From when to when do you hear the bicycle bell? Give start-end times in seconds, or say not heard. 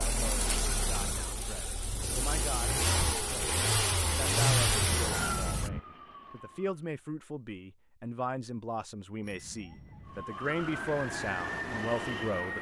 0.3-1.1, 4.8-5.8, 9.2-10.2.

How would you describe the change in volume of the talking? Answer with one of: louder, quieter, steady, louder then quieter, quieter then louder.
louder.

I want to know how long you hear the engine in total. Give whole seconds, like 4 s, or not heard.
6 s.